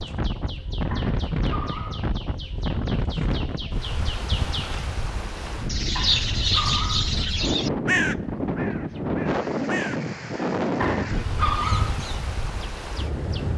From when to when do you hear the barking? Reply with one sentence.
You can hear the barking from 0.9 to 2.1 s, from 6.0 to 7.1 s and from 10.8 to 11.9 s.